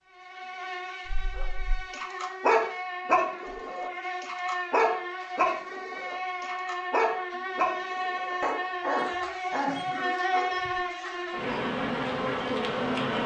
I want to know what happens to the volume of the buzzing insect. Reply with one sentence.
The loudness of the buzzing insect goes up.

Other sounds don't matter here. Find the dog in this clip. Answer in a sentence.
You can hear the dog from 1.1 to 10.7 s.